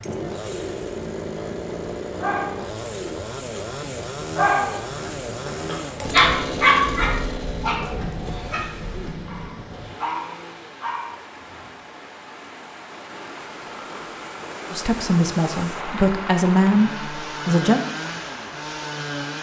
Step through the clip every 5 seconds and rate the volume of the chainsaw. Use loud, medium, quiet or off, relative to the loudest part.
loud, loud, quiet, loud.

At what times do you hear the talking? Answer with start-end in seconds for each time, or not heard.
14.7-17.8.